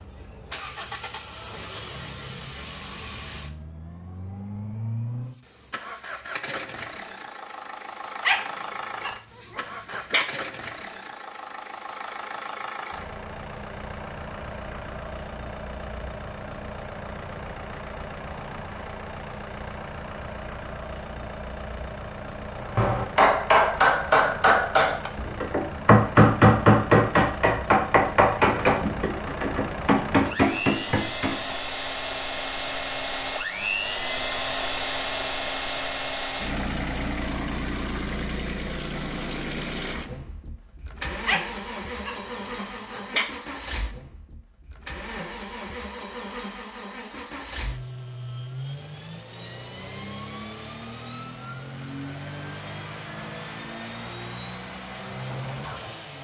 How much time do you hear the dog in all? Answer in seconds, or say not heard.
4 s.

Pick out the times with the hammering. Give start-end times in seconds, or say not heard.
22.6-31.6.